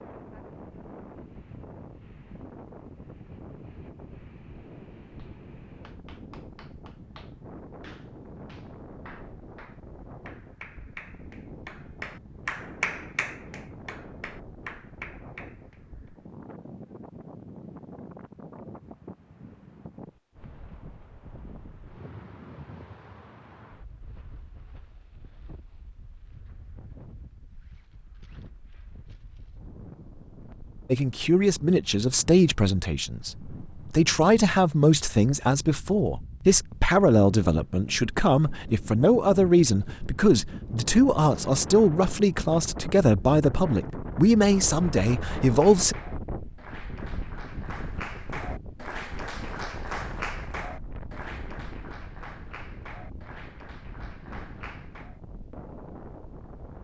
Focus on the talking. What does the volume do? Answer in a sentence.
The loudness of the talking stays about the same.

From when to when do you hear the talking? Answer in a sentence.
The talking can be heard from 30.9 to 46.0 s.